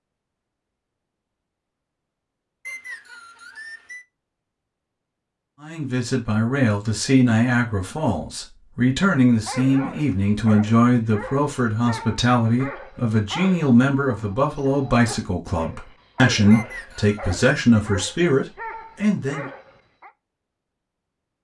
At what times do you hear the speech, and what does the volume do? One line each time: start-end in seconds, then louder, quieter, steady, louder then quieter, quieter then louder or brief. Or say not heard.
5.6-19.4 steady.